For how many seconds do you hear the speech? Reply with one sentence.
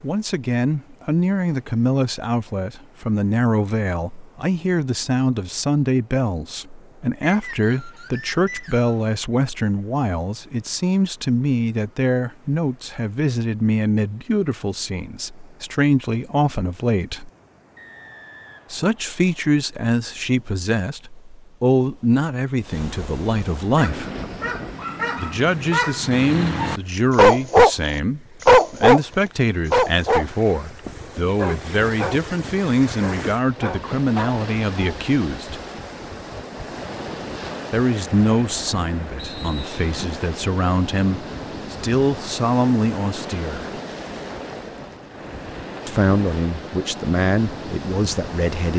You can hear the speech for 42 seconds altogether.